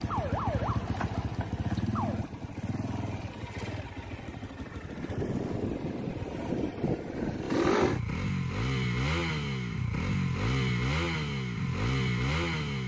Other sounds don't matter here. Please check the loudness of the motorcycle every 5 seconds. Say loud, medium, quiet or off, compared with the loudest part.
medium, loud, loud.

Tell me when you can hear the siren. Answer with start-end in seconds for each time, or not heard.
0.0-2.2.